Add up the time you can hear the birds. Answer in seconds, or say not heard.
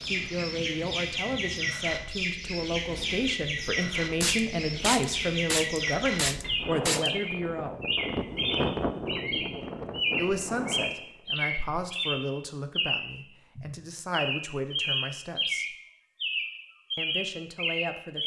18 s.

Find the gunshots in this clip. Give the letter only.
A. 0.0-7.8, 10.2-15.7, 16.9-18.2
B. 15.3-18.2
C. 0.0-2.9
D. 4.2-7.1
D.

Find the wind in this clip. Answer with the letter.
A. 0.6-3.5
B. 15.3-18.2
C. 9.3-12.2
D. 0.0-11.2
D.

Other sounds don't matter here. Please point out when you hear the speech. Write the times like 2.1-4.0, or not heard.
0.0-7.8, 10.2-15.7, 16.9-18.2.